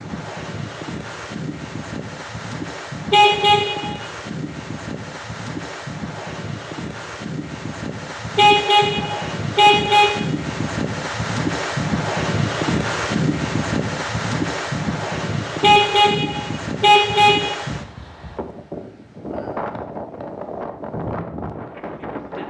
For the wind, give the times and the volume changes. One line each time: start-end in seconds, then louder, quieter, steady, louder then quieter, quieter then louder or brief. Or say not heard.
0.0-22.4 louder then quieter.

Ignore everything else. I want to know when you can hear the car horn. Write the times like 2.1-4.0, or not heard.
3.1-4.0, 8.3-10.2, 15.6-17.6.